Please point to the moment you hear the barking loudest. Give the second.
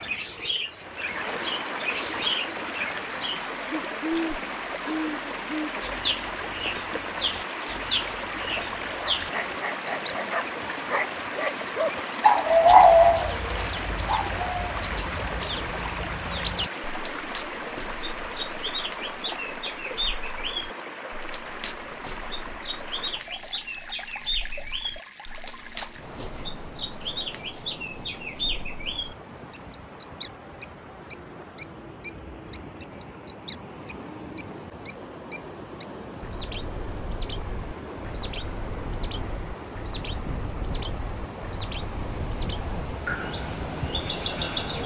13 s.